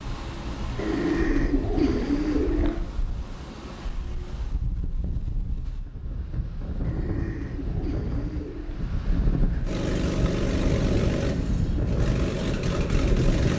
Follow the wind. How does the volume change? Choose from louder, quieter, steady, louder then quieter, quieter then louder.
louder.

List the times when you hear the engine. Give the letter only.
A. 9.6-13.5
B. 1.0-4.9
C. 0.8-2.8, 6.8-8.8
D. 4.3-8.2
A.